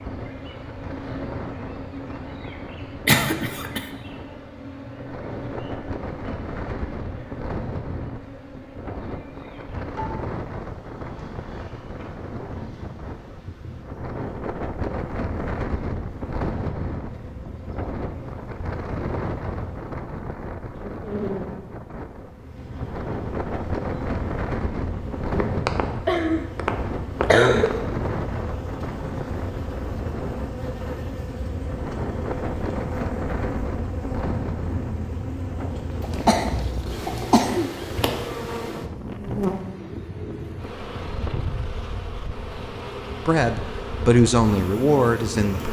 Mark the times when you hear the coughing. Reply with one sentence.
You can hear the coughing from 3.0 to 3.9 s, from 25.4 to 27.8 s and from 36.0 to 37.7 s.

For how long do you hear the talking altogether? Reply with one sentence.
You can hear the talking for 2 seconds altogether.